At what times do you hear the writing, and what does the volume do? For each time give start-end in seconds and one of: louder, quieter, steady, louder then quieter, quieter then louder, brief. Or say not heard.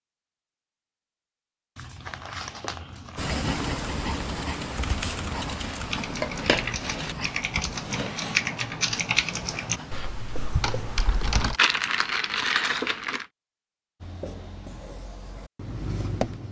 3.1-11.8 quieter
14.0-16.4 brief.